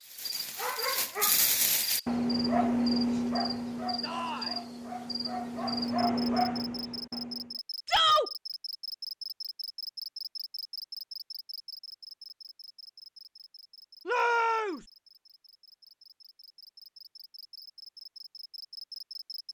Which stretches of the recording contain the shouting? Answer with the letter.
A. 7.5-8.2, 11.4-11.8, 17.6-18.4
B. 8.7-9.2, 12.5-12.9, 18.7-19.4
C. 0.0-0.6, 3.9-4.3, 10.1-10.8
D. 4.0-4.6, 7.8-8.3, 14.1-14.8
D.